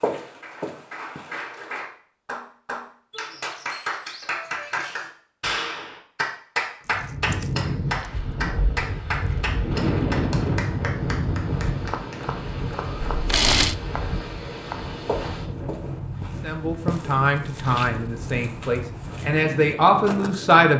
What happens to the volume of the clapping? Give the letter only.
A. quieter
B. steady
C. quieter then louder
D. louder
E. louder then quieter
E.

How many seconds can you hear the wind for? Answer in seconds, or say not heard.
14 s.